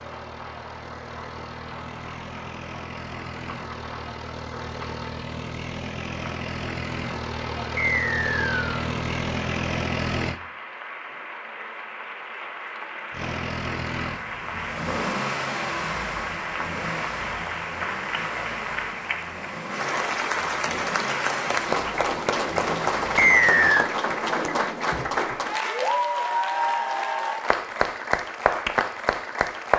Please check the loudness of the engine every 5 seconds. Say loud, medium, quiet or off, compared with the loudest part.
medium, loud, loud, loud, medium, off.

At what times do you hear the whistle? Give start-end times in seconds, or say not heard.
7.8-8.7, 23.1-23.9.